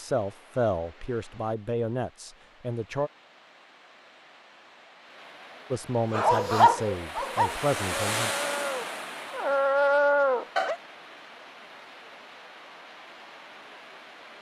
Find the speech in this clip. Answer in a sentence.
The speech can be heard from 0.0 to 3.1 s and from 5.7 to 8.3 s.